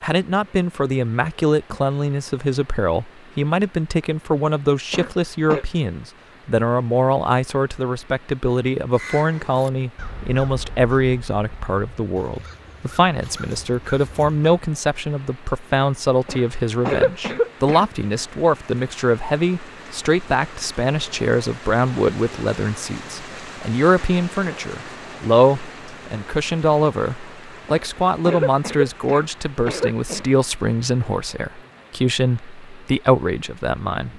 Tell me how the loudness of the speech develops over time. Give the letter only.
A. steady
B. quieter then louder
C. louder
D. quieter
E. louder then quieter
A.